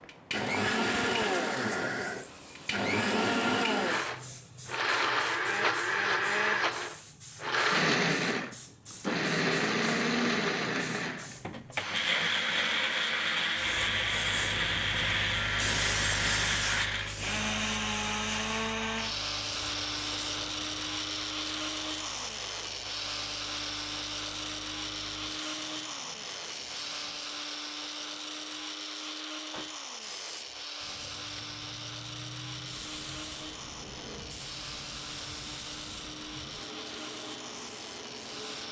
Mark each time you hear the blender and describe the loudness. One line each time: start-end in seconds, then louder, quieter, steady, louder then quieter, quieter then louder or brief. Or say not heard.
0.0-38.6 quieter.